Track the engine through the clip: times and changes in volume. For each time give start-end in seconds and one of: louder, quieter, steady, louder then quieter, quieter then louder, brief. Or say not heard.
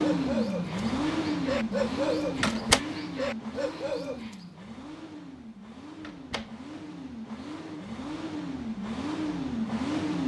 0.0-10.2 quieter then louder.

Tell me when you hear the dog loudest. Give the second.
2 s.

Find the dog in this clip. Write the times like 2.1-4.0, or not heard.
0.0-4.5.